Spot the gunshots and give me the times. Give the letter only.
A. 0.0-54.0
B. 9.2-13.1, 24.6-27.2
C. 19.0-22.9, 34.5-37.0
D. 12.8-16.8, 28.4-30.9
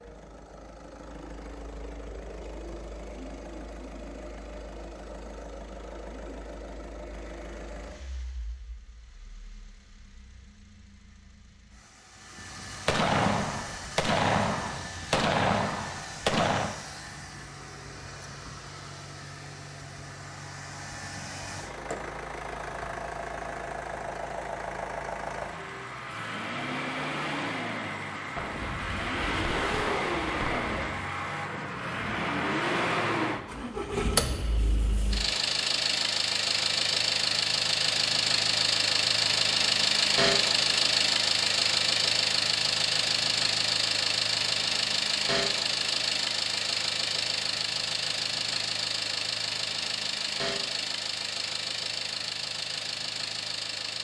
D.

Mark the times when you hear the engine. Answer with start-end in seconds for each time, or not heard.
0.0-54.0.